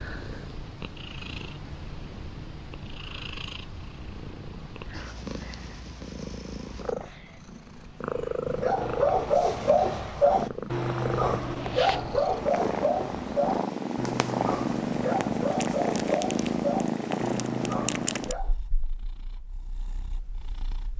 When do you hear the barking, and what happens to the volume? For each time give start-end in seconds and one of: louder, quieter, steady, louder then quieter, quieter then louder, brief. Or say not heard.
8.4-18.6 quieter.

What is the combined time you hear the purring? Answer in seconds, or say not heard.
21 s.